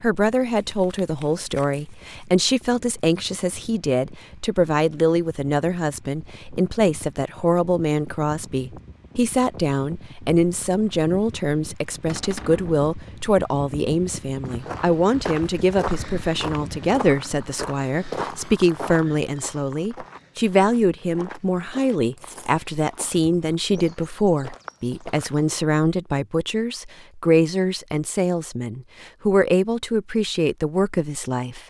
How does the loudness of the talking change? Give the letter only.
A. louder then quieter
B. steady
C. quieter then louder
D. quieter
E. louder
B.